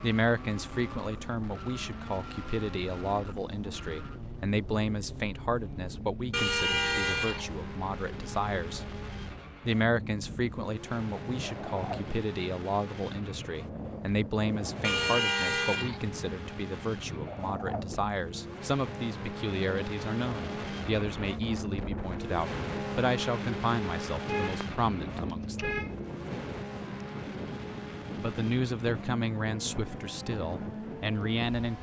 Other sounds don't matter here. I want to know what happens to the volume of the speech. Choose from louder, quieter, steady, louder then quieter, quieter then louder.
steady.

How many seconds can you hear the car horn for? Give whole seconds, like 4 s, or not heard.
4 s.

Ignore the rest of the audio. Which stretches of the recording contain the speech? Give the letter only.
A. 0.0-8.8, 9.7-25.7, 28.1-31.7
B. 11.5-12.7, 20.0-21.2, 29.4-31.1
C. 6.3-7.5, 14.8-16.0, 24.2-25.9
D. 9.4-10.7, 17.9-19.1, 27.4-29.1
A.